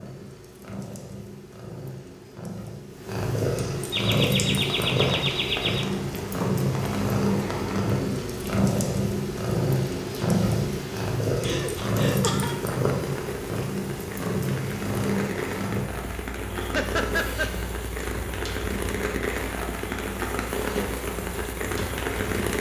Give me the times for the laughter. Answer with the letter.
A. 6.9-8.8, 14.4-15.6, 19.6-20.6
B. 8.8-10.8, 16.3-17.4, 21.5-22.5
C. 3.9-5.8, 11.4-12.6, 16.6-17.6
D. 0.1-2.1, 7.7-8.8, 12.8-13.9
C.